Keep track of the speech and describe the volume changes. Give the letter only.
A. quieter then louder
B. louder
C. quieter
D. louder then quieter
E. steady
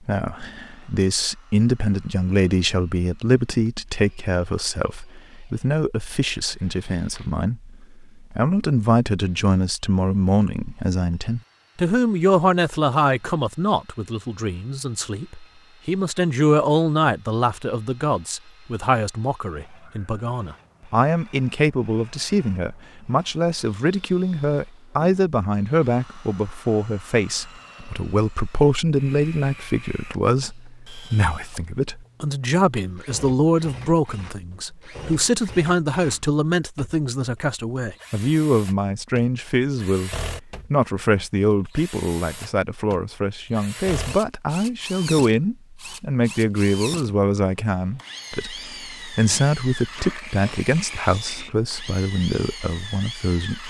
E.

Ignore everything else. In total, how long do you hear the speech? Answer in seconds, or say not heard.
53 s.